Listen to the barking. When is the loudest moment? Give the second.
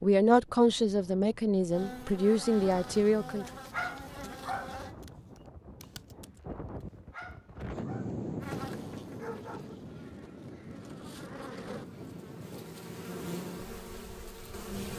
4 s.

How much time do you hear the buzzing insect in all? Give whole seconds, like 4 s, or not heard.
10 s.